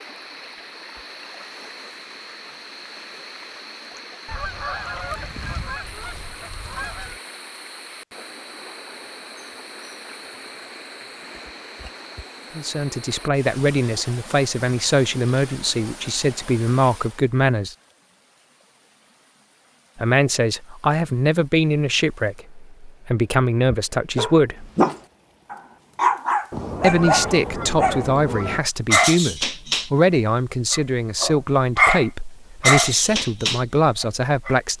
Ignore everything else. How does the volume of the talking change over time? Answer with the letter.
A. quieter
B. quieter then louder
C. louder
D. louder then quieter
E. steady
E.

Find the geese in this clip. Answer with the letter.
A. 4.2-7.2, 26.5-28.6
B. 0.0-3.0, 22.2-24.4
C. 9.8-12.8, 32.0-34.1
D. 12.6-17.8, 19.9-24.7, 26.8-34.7
A.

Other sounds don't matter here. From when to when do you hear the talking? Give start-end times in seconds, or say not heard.
12.6-17.8, 19.9-24.7, 26.8-34.7.